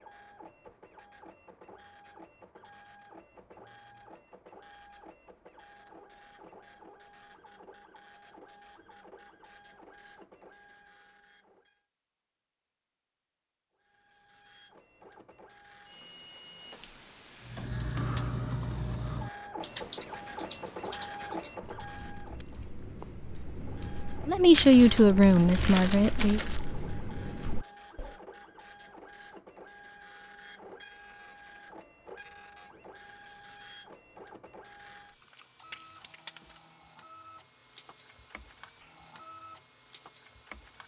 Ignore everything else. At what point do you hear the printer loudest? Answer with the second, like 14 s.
21 s.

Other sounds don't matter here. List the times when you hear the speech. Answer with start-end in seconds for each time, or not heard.
24.2-26.4.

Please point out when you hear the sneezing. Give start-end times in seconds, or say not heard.
not heard.